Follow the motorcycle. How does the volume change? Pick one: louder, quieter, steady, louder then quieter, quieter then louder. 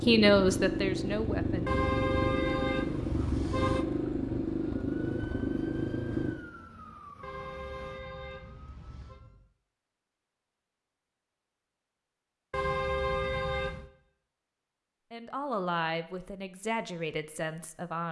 steady.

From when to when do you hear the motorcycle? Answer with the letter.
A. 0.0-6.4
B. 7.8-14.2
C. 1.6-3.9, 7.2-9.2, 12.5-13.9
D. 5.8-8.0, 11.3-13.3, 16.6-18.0
A.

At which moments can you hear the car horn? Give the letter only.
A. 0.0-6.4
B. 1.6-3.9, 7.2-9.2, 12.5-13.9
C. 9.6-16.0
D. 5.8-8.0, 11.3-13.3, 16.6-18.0
B.